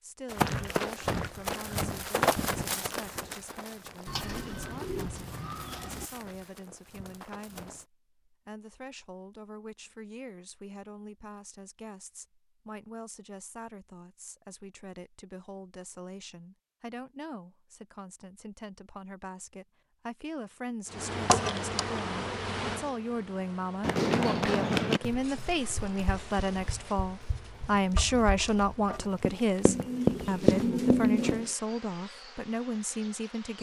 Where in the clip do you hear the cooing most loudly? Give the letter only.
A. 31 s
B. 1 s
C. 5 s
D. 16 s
A.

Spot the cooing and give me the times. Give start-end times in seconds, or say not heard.
4.0-6.0, 29.6-31.5.